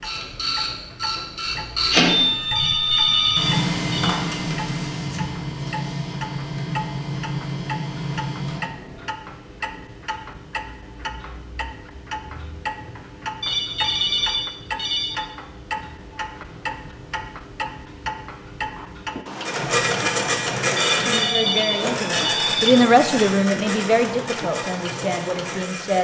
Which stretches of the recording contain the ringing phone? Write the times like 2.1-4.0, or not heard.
2.5-4.2, 13.4-15.2, 20.8-22.8.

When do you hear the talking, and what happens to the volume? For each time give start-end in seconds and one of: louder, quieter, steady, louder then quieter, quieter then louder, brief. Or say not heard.
20.9-25.9 louder then quieter.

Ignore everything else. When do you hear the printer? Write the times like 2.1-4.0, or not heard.
0.0-9.2, 19.4-25.9.